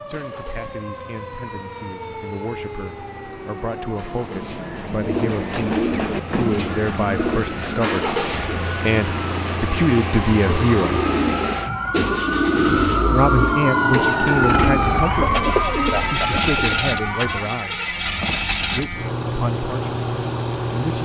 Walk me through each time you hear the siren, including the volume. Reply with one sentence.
You can hear the siren from 0.0 to 17.4 s, getting louder.